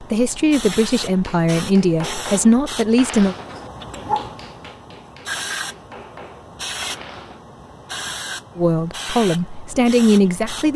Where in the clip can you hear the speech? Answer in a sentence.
You can hear the speech from 0.0 to 3.4 s and from 8.6 to 10.7 s.